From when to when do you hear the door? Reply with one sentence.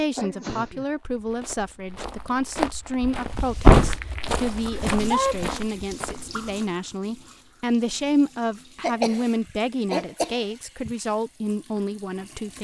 The door can be heard from 3.0 to 4.0 s.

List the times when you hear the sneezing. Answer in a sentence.
You can hear the sneezing from 0.1 to 0.8 s, from 4.7 to 5.5 s, from 8.8 to 9.2 s and from 9.9 to 10.9 s.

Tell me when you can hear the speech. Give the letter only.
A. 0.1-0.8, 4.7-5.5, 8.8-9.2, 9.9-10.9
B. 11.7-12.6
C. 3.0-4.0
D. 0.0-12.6
D.